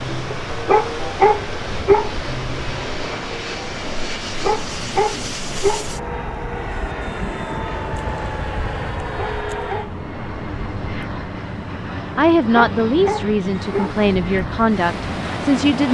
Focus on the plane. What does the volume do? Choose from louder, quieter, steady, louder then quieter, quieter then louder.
steady.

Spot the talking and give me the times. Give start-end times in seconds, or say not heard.
12.2-15.9.